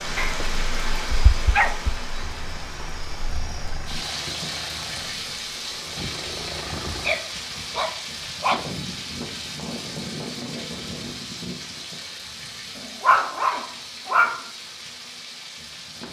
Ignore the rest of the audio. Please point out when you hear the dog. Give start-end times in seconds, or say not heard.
0.1-1.9, 6.0-8.7, 13.0-14.4.